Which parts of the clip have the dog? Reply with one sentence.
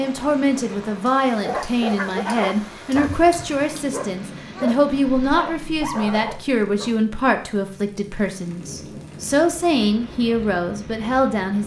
The dog can be heard from 1.4 to 7.0 s.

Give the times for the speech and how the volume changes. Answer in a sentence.
You can hear the speech from 0.0 to 11.6 s, at a steady volume.